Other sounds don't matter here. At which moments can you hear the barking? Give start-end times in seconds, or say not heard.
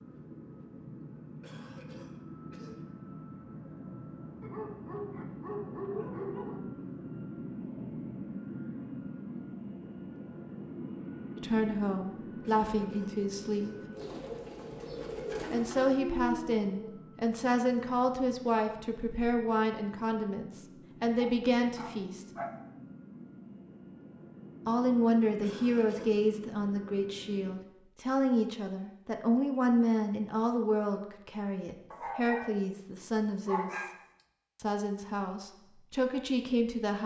4.4-6.6, 15.4-16.7, 21.2-22.5, 31.9-32.5, 33.5-33.9.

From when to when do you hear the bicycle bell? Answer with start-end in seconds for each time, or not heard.
not heard.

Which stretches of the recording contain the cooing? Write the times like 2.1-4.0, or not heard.
13.9-15.9.